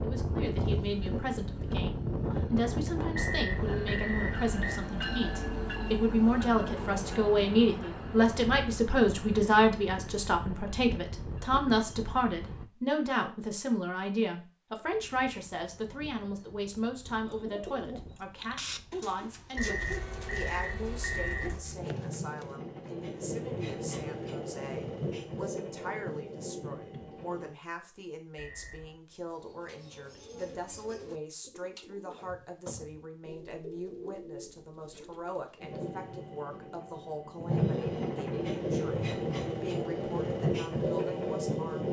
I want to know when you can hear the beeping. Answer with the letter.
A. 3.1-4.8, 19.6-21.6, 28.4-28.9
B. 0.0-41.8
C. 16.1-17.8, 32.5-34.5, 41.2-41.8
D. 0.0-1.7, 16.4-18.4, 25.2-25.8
A.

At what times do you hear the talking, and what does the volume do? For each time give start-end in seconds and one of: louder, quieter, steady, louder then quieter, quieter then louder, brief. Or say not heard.
0.0-41.8 quieter.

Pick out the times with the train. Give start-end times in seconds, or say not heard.
0.0-12.7, 14.8-27.6, 35.6-41.8.